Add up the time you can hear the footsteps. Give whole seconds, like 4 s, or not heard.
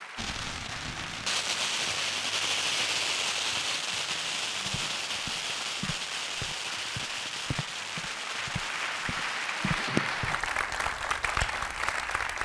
6 s.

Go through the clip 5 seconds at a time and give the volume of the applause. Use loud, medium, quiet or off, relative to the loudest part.
medium, medium, loud.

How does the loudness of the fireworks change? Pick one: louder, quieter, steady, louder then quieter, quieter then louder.
quieter.